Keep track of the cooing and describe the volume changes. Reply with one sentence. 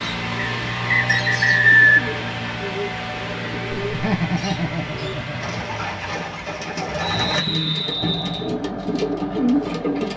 The loudness of the cooing goes up.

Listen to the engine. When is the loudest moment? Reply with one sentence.
The volume of the engine peaks at 1 second.